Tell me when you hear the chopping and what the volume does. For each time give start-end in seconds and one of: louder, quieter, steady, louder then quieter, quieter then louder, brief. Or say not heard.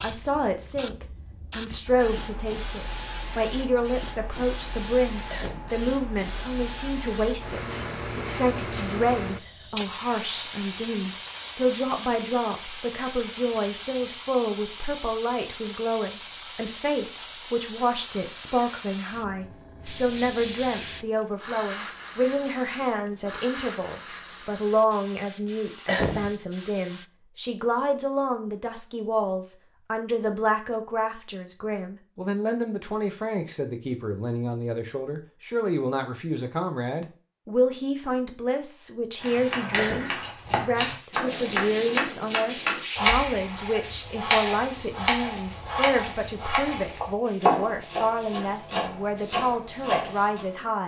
39.2-50.6 steady.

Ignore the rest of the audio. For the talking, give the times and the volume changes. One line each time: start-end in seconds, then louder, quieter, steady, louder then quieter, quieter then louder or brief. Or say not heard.
0.0-50.8 steady.